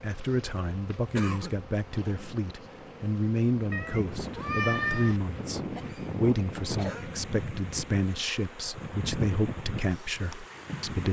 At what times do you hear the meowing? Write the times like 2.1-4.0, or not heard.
3.7-5.2.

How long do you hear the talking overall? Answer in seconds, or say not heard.
11 s.